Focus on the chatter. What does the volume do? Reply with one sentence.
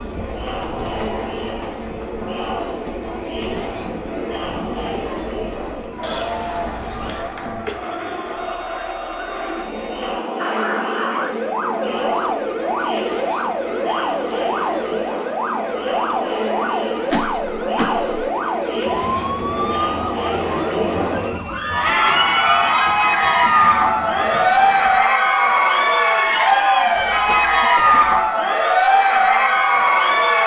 The loudness of the chatter goes up.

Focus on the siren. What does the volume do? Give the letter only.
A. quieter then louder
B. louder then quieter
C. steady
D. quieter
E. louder
D.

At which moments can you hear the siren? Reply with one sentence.
The siren can be heard from 10.3 to 25.1 s.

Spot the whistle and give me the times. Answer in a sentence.
You can't hear the whistle here.